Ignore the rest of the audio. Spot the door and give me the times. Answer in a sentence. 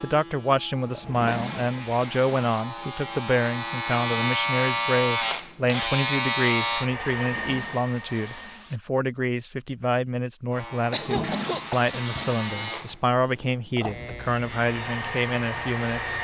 The door can't be heard in this clip.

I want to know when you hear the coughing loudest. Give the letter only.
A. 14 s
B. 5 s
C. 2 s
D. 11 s
D.